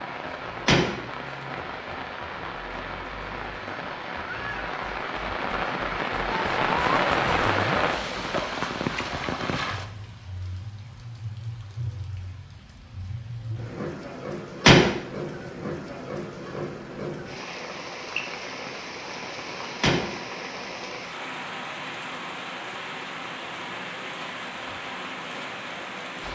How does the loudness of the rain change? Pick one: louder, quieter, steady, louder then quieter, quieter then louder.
louder then quieter.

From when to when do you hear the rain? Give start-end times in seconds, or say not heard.
0.0-26.2.